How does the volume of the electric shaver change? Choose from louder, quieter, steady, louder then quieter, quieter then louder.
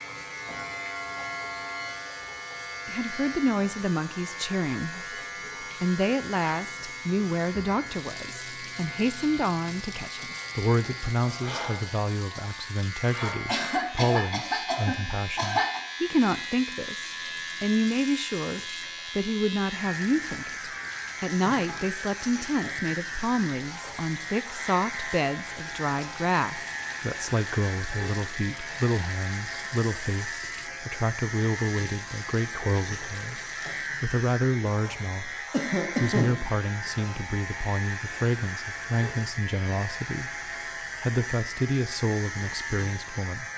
steady.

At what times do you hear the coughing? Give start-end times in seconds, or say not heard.
13.4-15.8, 35.5-36.4.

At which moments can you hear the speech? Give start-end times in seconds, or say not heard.
2.9-33.4, 34.0-35.4, 36.0-43.5.